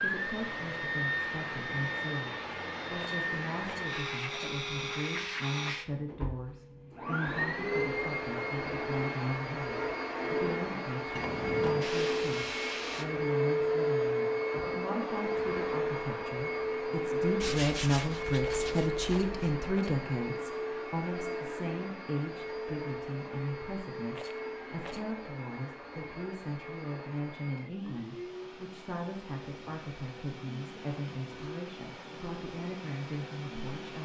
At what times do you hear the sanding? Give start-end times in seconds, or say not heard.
11.2-13.1, 17.4-19.6.